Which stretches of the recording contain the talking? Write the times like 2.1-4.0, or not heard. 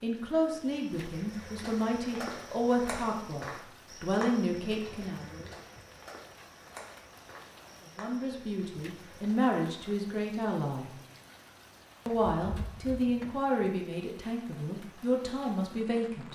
0.0-5.5, 8.0-10.9, 12.1-16.3.